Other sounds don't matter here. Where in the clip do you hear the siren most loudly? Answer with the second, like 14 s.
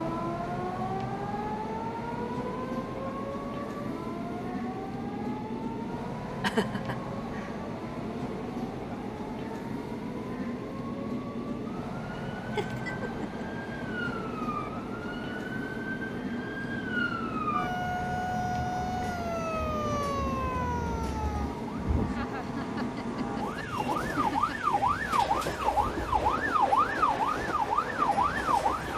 27 s.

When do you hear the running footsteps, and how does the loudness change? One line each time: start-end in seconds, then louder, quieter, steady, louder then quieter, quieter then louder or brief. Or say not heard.
not heard.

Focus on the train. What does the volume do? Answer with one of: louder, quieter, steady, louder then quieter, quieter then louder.
steady.